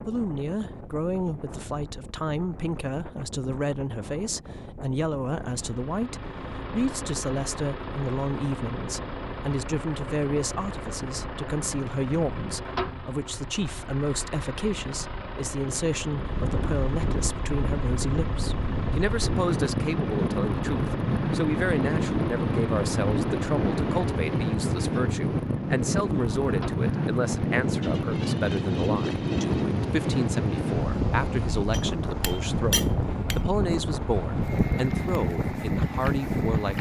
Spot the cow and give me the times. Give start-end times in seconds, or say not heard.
not heard.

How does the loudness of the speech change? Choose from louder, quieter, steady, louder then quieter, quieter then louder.
steady.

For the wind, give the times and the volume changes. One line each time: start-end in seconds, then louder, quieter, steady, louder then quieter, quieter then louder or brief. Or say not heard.
0.0-36.7 louder.